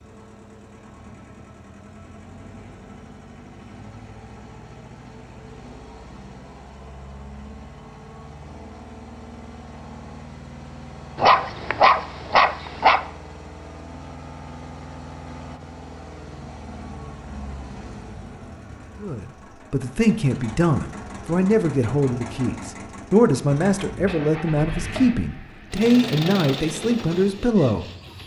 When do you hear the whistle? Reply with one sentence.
The whistle can't be heard in this clip.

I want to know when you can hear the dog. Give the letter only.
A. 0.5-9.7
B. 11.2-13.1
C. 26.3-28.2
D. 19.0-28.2
B.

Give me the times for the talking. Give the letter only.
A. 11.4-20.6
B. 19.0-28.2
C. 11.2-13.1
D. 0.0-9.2
B.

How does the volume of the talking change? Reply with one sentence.
The volume of the talking stays about the same.